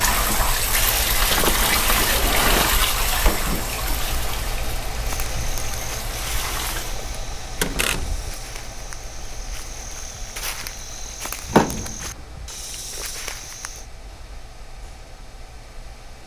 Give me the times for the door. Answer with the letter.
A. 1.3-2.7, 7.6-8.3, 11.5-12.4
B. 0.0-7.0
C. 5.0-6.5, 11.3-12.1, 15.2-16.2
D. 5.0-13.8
A.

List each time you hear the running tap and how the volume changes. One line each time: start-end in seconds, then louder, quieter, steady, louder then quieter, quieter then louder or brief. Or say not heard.
0.0-7.0 quieter.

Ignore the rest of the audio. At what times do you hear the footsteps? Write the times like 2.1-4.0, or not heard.
5.0-13.8.